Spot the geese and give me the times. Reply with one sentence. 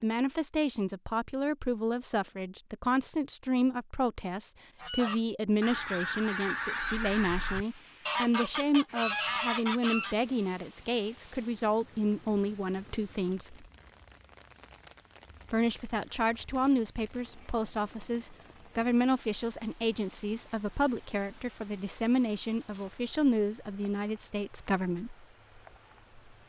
You can hear the geese from 4.8 to 10.2 s.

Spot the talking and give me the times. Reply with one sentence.
You can hear the talking from 0.0 to 13.7 s and from 15.5 to 25.1 s.